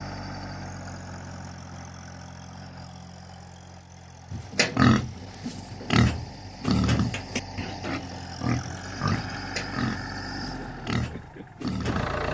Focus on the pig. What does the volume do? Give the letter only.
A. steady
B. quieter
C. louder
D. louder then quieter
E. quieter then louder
B.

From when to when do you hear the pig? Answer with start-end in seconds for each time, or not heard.
4.3-12.1.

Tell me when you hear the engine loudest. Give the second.
12 s.